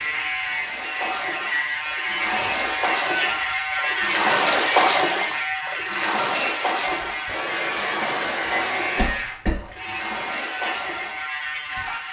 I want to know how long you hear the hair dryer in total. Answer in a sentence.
The hair dryer can be heard for 2 seconds in total.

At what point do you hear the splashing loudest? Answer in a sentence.
The loudest moment of the splashing is at 5 seconds.